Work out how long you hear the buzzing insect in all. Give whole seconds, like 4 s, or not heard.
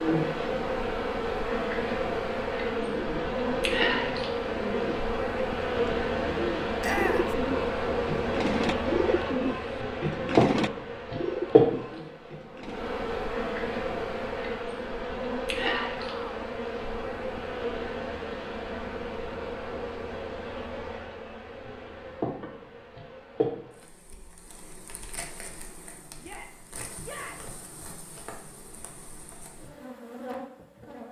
31 s.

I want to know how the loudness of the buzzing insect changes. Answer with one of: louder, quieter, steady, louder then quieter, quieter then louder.
quieter.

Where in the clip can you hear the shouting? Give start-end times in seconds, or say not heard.
6.8-7.2, 15.6-16.4, 26.2-27.6.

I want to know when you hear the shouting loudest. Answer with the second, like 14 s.
7 s.